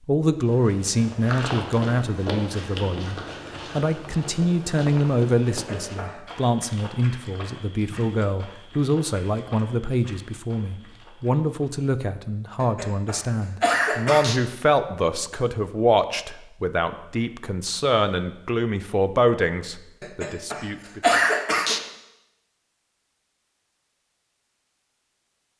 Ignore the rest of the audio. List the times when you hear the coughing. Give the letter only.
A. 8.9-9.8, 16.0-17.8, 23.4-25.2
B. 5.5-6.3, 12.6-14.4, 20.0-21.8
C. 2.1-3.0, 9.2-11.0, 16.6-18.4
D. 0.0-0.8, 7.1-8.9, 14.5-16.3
B.